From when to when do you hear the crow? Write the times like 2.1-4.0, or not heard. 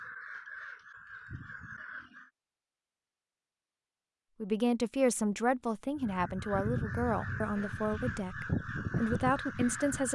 0.0-2.3, 6.0-10.1.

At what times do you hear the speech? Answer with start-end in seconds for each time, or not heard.
4.4-10.1.